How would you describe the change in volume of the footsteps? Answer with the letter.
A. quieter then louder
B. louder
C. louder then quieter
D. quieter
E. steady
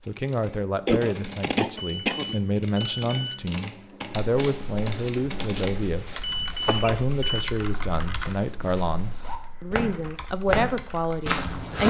B.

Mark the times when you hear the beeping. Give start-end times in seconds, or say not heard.
1.8-3.4, 6.3-7.5.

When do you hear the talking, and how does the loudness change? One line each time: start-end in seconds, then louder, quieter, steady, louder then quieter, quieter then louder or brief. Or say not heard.
0.1-11.8 steady.